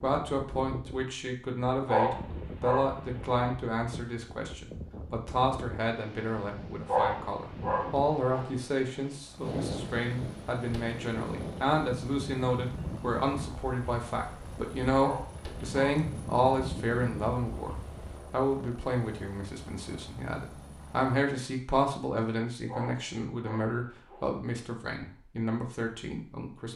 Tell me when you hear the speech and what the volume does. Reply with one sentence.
You can hear the speech from 0.0 to 26.7 s, at a steady volume.